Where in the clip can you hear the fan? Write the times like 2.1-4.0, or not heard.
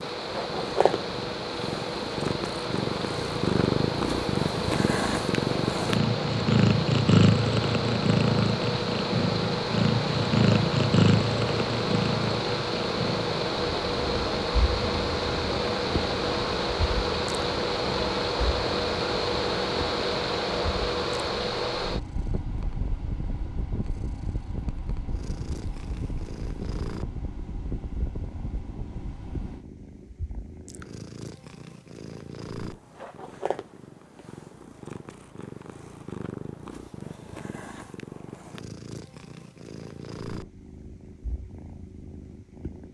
0.0-29.6.